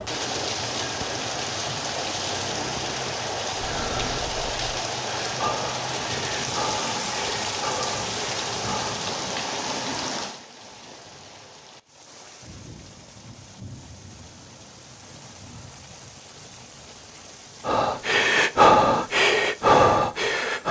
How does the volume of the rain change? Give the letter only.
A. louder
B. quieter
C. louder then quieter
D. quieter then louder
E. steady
B.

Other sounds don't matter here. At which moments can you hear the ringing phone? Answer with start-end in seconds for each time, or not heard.
not heard.